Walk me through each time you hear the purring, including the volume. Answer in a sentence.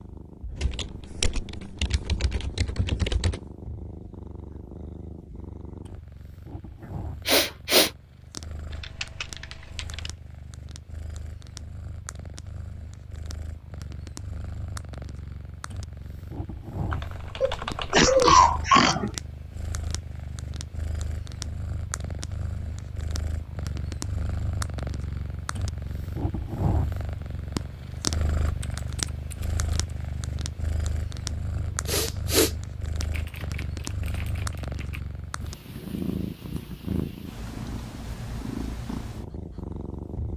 You can hear the purring from 0.0 to 40.3 s, getting louder.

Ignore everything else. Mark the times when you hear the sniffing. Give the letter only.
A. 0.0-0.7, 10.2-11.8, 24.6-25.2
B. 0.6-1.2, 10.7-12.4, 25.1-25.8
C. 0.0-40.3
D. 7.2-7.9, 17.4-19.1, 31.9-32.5
D.